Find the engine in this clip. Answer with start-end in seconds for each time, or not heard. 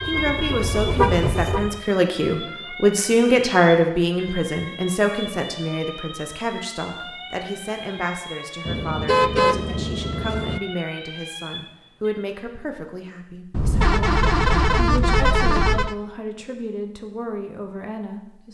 0.0-1.8.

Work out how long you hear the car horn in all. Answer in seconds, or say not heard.
6 s.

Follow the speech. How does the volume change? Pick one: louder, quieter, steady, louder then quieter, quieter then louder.
quieter.